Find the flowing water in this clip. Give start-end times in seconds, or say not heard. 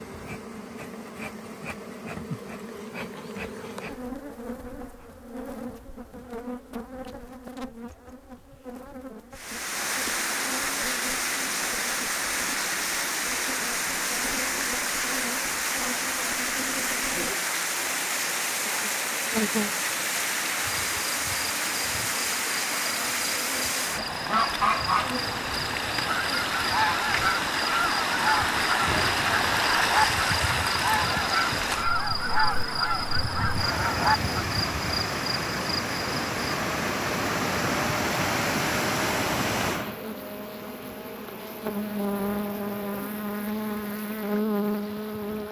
9.3-45.4.